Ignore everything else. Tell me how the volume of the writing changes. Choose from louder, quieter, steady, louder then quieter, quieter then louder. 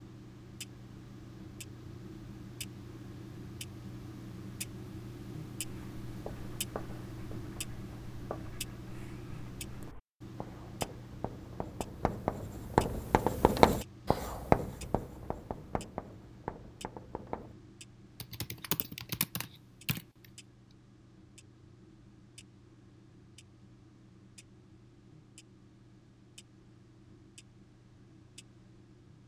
louder then quieter.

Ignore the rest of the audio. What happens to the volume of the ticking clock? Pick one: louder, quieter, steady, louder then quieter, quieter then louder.
quieter.